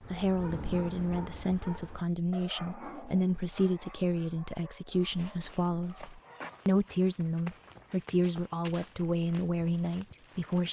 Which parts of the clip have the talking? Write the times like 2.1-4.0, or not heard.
0.1-10.6.